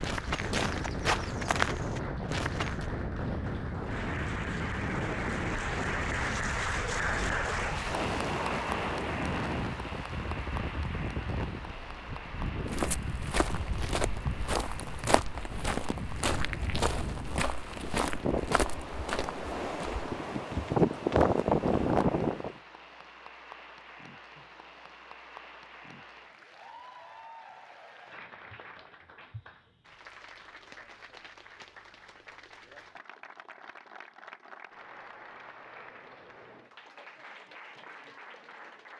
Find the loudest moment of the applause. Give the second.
7 s.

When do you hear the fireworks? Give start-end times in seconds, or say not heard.
not heard.